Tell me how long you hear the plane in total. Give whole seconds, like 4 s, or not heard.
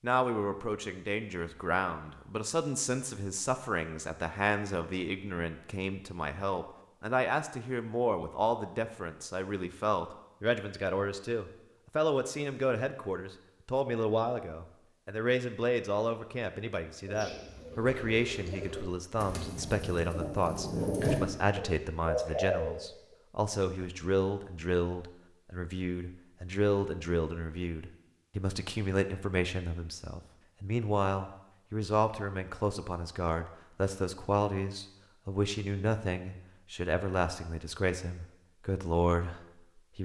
not heard.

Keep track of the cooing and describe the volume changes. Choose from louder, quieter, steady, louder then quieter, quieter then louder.
louder.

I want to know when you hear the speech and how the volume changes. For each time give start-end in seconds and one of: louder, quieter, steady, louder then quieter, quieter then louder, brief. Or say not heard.
0.0-40.0 steady.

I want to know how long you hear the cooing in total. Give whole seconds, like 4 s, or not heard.
6 s.